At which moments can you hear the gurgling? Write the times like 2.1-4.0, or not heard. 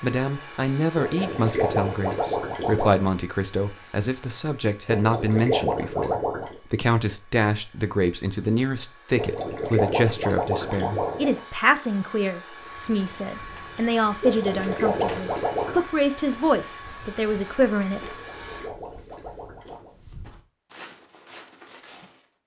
0.9-3.0, 4.8-6.5, 9.2-11.4, 14.2-15.8, 18.0-19.9.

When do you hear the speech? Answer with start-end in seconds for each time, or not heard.
0.0-18.1.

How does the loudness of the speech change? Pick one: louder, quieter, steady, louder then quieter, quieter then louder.
steady.